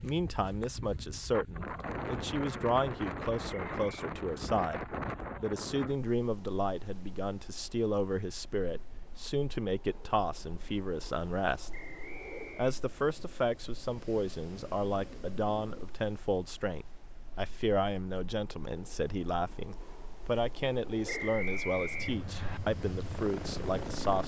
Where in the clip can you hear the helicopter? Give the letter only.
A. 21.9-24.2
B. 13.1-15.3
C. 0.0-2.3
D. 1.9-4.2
A.